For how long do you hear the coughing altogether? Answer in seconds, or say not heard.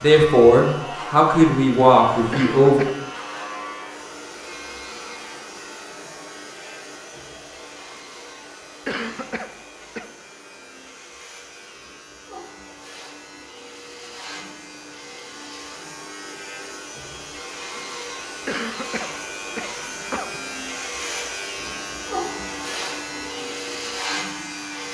4 s.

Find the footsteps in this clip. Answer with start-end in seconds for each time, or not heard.
not heard.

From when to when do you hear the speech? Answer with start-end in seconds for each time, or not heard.
0.0-2.9.